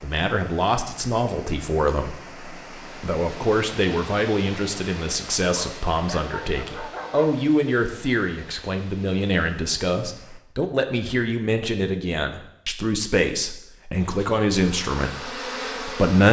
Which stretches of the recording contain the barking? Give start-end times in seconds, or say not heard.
5.5-7.4.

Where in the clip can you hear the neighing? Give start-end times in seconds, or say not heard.
not heard.